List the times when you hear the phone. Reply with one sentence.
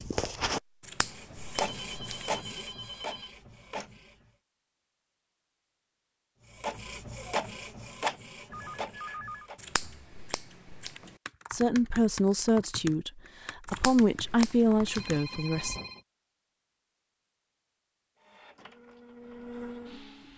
You can hear the phone from 1.5 to 3.4 s, from 8.5 to 10.1 s and from 14.8 to 16.0 s.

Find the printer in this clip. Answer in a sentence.
You can hear the printer from 0.0 to 4.3 s, from 6.5 to 9.6 s and from 18.1 to 20.3 s.